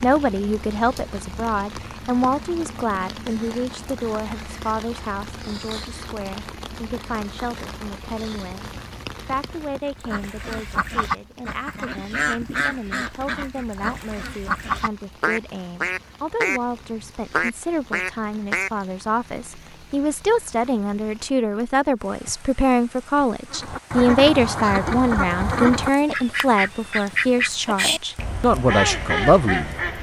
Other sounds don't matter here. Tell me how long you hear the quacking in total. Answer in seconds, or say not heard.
15 s.